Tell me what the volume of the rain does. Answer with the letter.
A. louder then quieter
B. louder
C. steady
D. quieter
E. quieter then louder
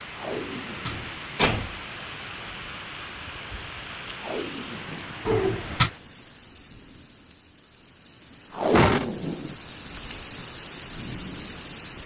E.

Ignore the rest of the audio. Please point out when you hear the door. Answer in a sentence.
The door can be heard from 0.3 to 1.8 s, from 5.2 to 5.9 s and from 8.7 to 9.6 s.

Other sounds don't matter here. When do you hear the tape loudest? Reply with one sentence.
The loudest moment of the tape is at 9 seconds.